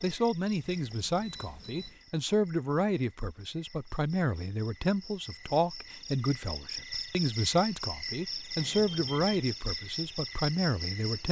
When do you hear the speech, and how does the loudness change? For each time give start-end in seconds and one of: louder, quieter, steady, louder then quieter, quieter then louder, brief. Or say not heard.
0.0-11.2 steady.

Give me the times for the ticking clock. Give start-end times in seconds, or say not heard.
not heard.